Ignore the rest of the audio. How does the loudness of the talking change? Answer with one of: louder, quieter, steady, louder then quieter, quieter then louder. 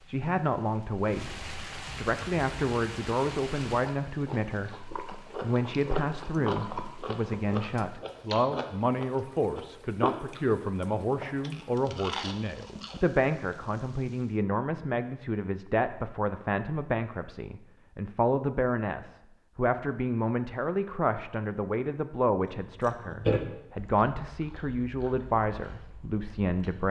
steady.